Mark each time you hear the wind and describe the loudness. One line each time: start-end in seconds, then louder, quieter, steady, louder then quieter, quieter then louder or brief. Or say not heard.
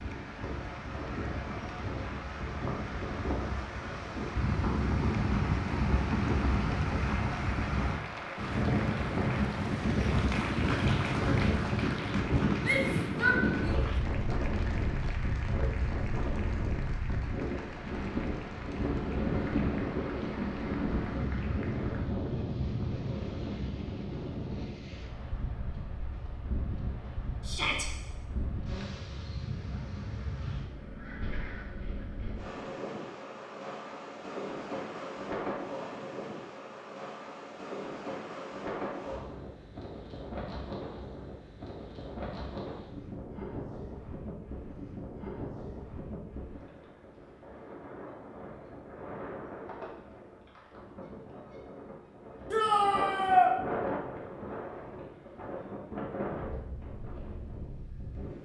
0.0-58.3 quieter.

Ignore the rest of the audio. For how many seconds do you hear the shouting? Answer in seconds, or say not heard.
3 s.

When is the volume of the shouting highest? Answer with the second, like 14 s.
53 s.